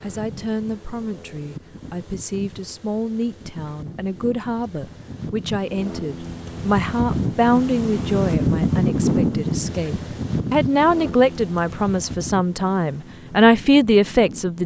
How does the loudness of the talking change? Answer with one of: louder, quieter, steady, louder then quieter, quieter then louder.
louder.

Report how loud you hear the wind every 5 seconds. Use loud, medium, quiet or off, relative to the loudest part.
quiet, loud, medium.